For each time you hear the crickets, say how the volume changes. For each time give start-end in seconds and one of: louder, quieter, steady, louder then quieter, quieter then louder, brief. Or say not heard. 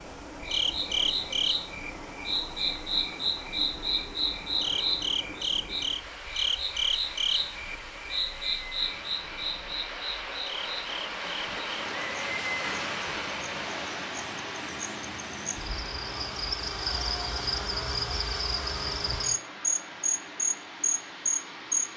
0.0-21.9 quieter then louder.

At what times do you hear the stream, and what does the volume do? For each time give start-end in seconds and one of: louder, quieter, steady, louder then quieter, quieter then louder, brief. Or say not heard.
0.0-21.9 louder then quieter.